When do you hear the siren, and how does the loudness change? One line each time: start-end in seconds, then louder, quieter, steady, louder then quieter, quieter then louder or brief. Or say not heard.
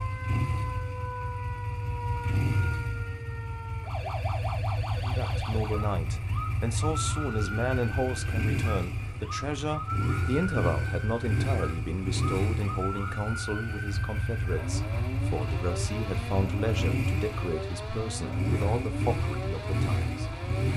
0.0-20.7 steady.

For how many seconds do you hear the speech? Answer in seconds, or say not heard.
15 s.